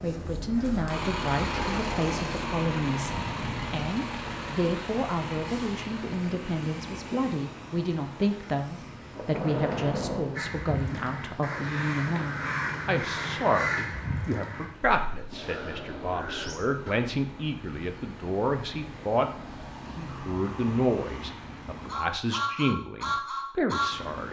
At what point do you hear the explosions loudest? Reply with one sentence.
The loudest moment of the explosions is at 10 seconds.